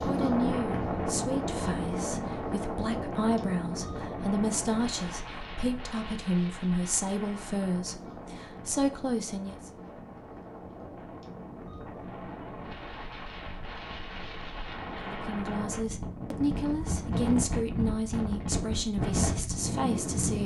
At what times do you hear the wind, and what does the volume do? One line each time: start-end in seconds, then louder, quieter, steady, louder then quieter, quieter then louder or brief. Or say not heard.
0.0-20.4 quieter then louder.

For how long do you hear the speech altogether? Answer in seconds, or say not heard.
15 s.